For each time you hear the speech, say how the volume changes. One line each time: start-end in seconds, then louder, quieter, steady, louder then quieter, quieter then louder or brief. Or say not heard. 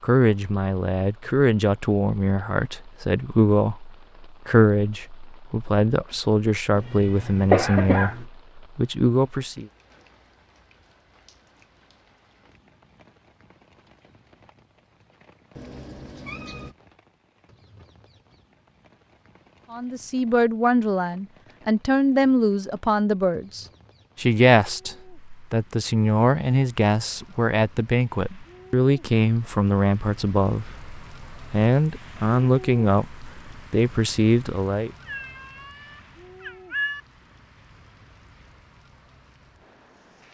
0.0-9.7 steady
19.7-34.9 steady.